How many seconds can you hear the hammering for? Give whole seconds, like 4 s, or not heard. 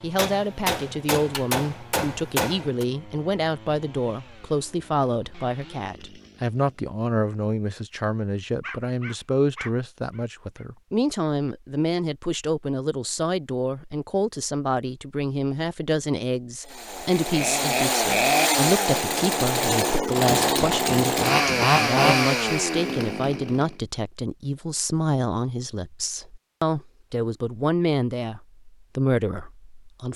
4 s.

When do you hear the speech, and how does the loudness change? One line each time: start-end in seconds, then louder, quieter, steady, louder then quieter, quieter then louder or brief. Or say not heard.
0.0-30.1 steady.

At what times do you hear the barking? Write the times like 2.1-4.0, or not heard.
8.6-10.7.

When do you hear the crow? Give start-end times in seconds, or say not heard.
not heard.